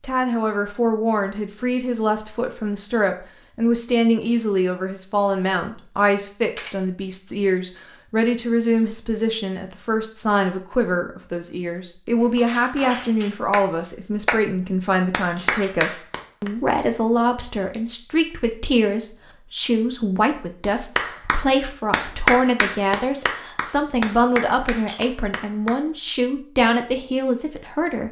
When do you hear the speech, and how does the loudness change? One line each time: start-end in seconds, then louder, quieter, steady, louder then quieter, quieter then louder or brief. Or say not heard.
0.0-28.0 steady.